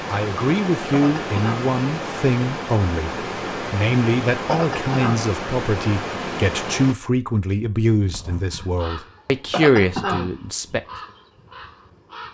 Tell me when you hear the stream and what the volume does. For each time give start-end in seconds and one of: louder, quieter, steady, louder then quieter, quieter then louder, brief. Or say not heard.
0.0-7.0 steady.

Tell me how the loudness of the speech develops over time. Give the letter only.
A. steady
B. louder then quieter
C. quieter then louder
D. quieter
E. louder
A.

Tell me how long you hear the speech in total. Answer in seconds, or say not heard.
11 s.